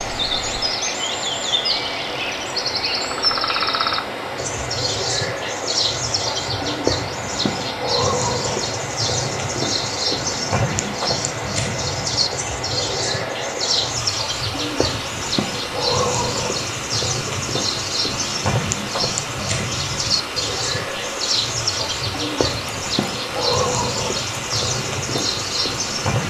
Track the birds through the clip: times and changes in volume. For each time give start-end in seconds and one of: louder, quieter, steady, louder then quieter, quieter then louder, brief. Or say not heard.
0.0-26.2 steady.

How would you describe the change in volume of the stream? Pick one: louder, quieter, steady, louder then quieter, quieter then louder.
steady.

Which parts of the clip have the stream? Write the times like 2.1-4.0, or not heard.
0.0-26.2.